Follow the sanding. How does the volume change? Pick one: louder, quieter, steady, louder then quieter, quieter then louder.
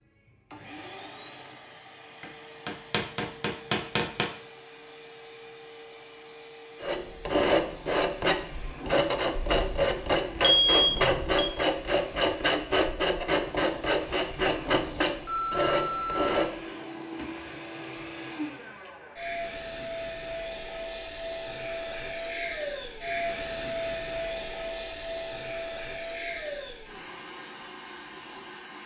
steady.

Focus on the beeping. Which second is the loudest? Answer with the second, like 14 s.
11 s.